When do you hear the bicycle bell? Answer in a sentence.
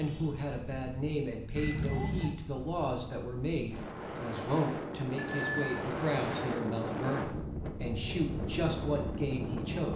The bicycle bell can be heard from 1.6 to 2.4 s and from 5.2 to 5.8 s.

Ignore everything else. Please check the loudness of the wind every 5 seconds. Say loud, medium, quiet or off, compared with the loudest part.
medium, loud.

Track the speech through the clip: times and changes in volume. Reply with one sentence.
The speech can be heard from 0.0 to 9.9 s, at a steady volume.